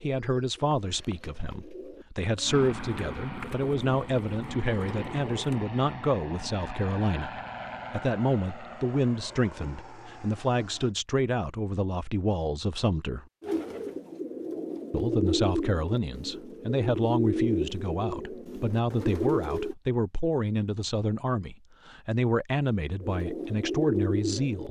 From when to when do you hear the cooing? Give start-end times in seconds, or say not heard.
0.0-5.7, 13.4-19.8, 23.0-24.6.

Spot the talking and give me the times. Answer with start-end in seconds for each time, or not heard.
0.0-13.2, 14.9-24.6.